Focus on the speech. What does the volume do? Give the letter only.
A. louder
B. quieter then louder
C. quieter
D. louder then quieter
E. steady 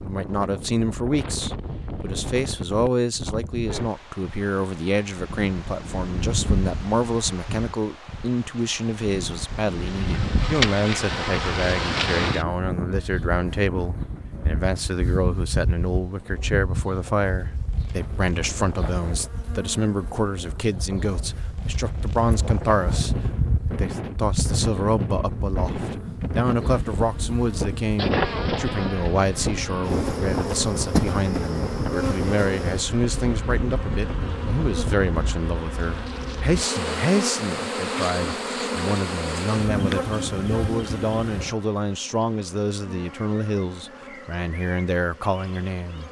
E.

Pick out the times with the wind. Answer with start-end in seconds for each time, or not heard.
0.0-35.4.